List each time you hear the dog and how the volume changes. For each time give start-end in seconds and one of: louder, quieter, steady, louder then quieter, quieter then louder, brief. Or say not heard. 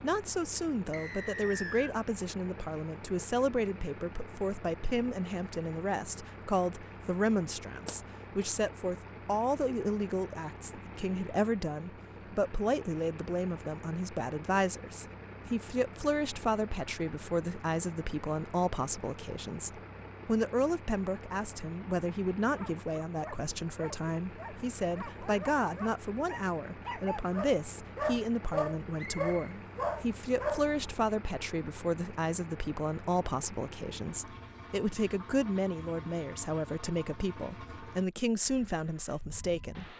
22.6-30.9 louder.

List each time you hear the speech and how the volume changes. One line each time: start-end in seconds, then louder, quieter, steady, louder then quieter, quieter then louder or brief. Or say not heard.
0.0-39.9 steady.